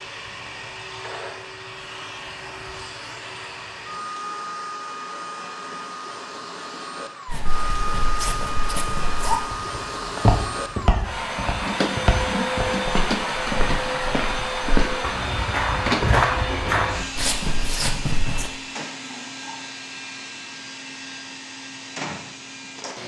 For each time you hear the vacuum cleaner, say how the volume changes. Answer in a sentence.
The vacuum cleaner can be heard from 0.0 to 23.0 s, getting louder then quieter.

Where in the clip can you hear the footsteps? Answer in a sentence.
The footsteps can be heard from 7.2 to 18.5 s.